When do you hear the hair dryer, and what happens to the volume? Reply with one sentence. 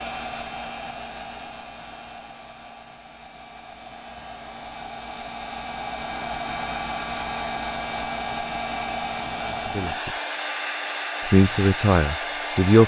The hair dryer can be heard from 0.0 to 12.8 s, getting louder.